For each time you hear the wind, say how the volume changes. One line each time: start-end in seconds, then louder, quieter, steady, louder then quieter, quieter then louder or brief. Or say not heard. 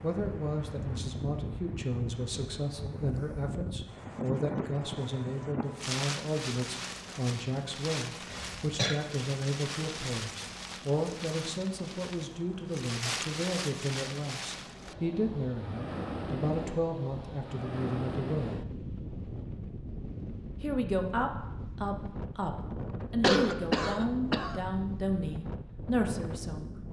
0.0-26.8 steady.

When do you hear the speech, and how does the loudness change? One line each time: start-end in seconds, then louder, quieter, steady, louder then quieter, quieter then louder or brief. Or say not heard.
0.0-18.6 steady
20.6-26.8 quieter then louder.